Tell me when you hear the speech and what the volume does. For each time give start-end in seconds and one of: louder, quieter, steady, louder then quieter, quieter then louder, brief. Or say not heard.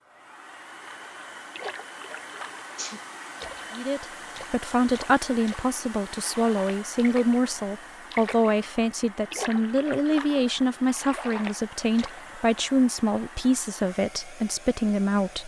3.7-15.4 steady.